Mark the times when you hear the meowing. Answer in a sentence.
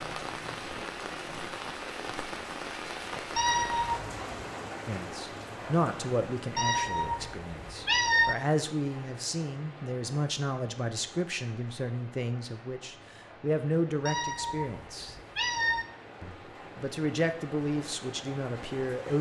The meowing can be heard from 3.4 to 4.2 s, from 6.5 to 8.3 s and from 14.1 to 15.8 s.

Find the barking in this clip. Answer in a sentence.
You can't hear the barking here.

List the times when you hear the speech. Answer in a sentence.
The speech can be heard from 4.8 to 15.2 s and from 16.2 to 19.1 s.